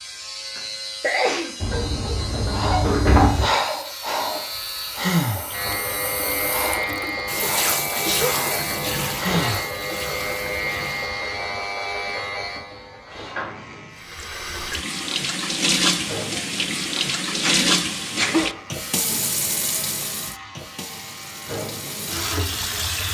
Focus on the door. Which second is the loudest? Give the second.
3 s.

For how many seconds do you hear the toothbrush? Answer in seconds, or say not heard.
not heard.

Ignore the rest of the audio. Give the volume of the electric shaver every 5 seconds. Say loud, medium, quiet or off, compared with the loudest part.
medium, loud, loud, medium, medium.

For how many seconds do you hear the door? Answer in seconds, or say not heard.
2 s.